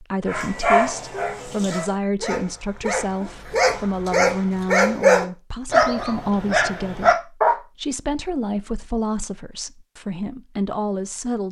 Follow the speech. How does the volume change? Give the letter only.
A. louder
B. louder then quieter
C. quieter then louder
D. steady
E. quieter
D.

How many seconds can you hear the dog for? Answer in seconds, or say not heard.
7 s.